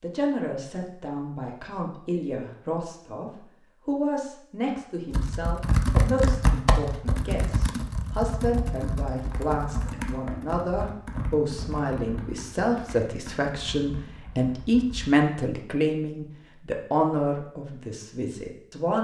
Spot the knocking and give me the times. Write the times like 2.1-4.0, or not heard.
not heard.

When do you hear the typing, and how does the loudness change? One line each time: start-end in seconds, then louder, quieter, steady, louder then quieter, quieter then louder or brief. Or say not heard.
5.1-15.2 quieter.